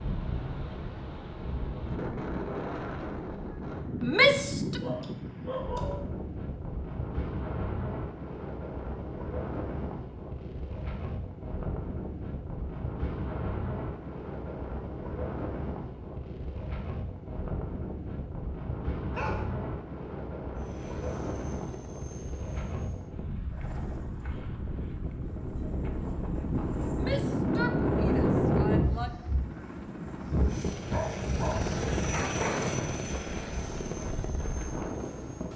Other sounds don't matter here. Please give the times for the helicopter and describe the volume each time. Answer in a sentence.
The helicopter can be heard from 20.6 to 35.5 s, getting louder.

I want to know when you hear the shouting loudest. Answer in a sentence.
The volume of the shouting peaks at 4 seconds.